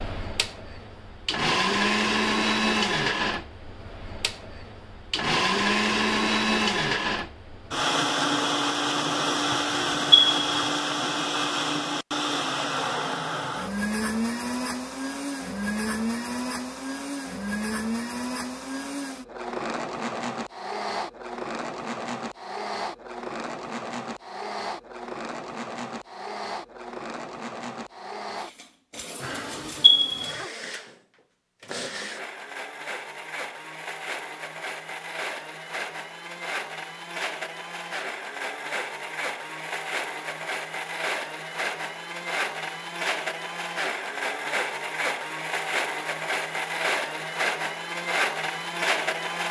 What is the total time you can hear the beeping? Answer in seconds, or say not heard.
2 s.